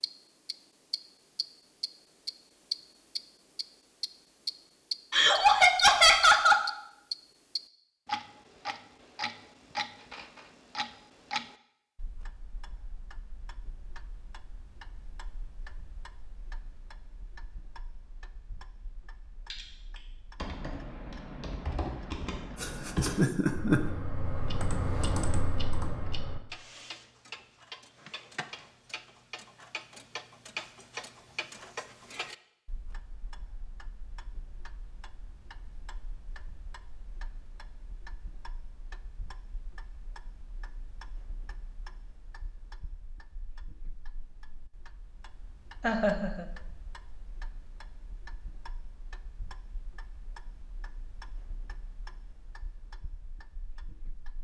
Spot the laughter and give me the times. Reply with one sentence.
You can hear the laughter from 5.1 to 6.7 s, from 22.6 to 23.8 s and from 45.8 to 46.5 s.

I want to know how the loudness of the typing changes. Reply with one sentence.
The volume of the typing goes up.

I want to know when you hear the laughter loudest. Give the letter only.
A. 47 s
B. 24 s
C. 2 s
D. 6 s
D.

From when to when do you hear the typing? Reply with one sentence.
You can hear the typing from 19.5 to 26.4 s.